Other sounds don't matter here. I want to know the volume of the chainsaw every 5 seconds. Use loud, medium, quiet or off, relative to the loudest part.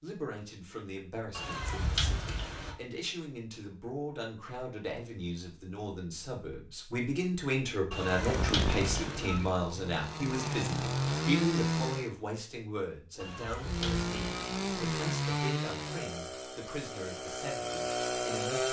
off, medium, loud, loud.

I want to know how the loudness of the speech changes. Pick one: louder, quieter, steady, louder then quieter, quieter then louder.
louder then quieter.